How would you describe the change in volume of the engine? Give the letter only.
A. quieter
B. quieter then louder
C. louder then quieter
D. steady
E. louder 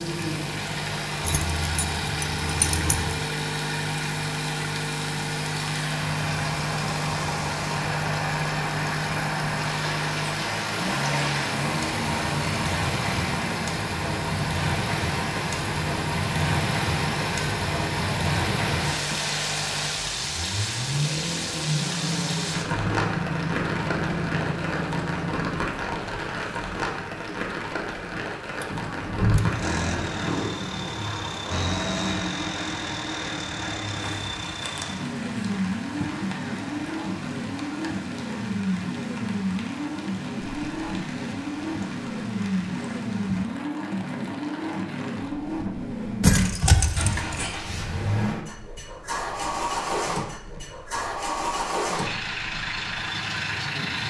D.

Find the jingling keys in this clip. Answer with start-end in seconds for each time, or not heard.
1.2-3.1, 46.2-47.5.